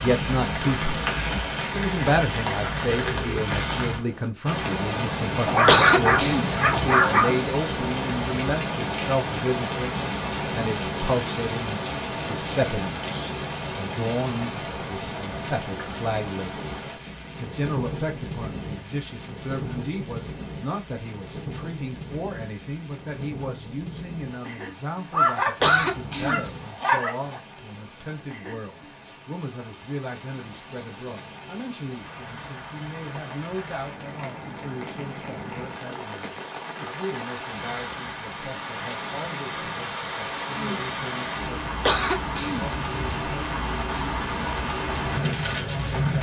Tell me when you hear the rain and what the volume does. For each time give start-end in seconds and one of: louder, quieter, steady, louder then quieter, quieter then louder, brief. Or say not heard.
0.0-46.1 quieter then louder.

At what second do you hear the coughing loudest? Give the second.
6 s.